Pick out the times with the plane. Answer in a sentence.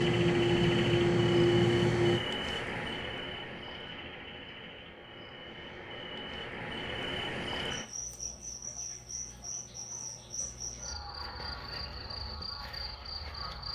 You can hear the plane from 0.0 to 2.2 s.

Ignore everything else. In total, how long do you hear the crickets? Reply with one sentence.
The crickets can be heard for 14 seconds in total.